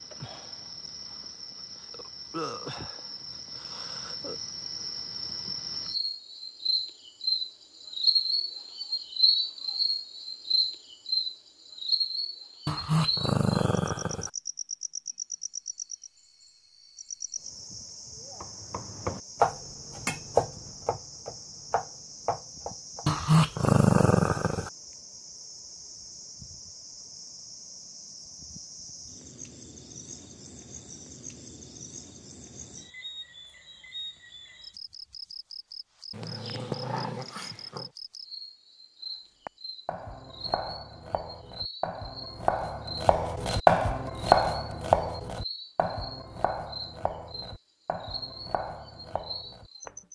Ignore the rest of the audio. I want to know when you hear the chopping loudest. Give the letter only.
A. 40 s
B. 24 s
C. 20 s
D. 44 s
D.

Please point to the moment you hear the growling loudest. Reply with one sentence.
The loudest moment of the growling is at 24 seconds.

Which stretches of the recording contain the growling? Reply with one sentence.
You can hear the growling from 12.7 to 14.3 s, from 23.1 to 24.7 s and from 36.1 to 37.9 s.